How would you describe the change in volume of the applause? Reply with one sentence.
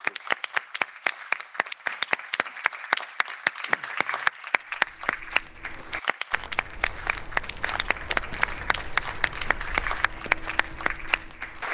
The volume of the applause stays about the same.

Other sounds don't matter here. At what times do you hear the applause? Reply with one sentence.
You can hear the applause from 0.0 to 11.6 s.